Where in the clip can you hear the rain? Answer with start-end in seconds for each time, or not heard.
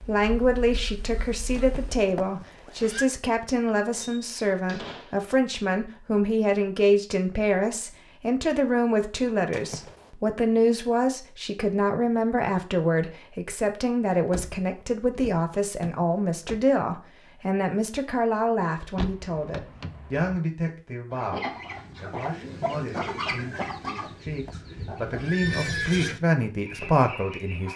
not heard.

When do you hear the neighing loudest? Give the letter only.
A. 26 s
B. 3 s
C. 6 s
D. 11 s
A.